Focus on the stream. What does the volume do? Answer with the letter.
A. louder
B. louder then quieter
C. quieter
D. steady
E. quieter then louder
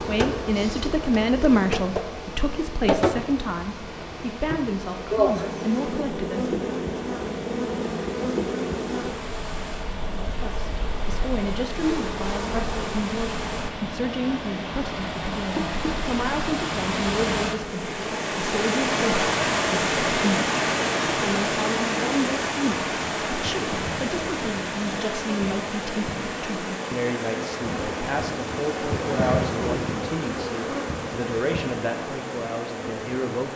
B.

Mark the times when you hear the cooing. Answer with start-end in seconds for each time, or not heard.
not heard.